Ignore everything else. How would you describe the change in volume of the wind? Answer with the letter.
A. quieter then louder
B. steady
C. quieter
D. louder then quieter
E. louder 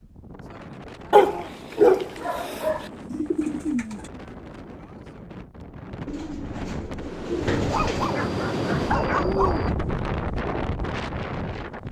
E.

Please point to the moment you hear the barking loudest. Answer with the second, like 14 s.
2 s.